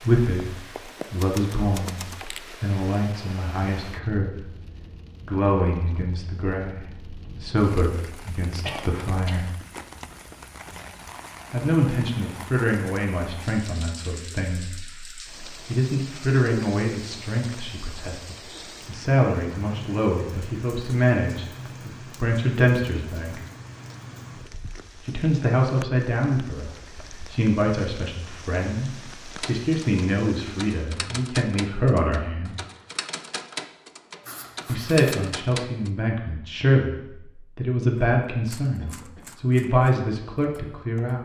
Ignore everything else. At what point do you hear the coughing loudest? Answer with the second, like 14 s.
9 s.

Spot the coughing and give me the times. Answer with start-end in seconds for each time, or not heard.
8.6-9.6, 38.8-39.3.